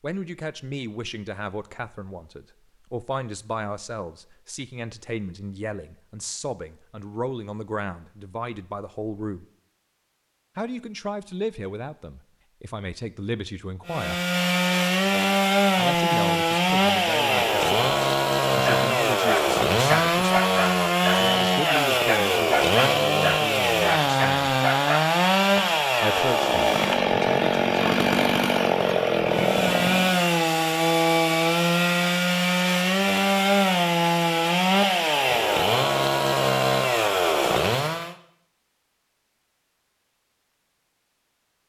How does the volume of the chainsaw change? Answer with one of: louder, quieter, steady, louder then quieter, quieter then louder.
steady.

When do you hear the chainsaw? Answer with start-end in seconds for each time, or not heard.
13.8-38.1.